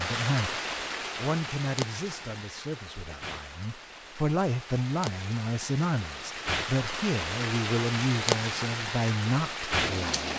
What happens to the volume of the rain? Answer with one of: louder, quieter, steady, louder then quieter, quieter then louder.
quieter then louder.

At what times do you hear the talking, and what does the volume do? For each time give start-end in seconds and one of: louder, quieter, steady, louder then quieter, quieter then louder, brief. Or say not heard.
0.0-10.2 quieter then louder.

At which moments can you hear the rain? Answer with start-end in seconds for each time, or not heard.
0.0-10.3.